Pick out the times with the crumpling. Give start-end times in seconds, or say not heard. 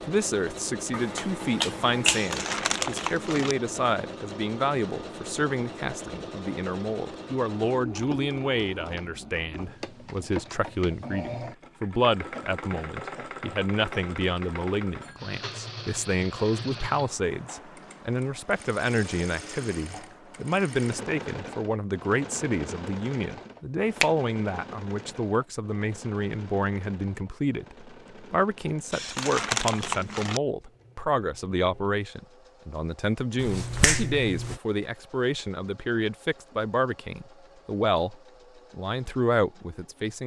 2.0-3.5, 28.9-30.4.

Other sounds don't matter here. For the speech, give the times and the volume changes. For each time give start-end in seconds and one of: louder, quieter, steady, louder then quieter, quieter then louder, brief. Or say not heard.
0.0-40.2 steady.